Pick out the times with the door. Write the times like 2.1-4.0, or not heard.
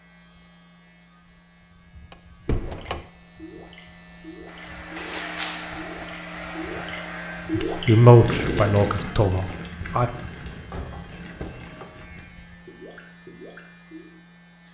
2.1-3.0, 5.0-6.0, 10.5-11.9.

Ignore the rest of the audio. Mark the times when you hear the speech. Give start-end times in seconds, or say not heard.
7.5-10.1.